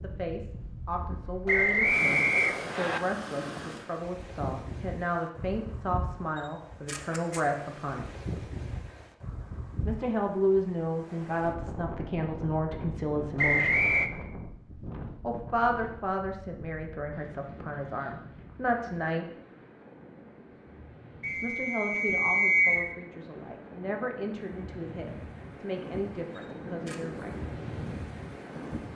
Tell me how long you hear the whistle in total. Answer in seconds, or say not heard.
4 s.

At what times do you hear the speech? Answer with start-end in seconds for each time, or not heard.
0.0-8.1, 9.8-13.8, 15.2-19.2, 21.4-27.4.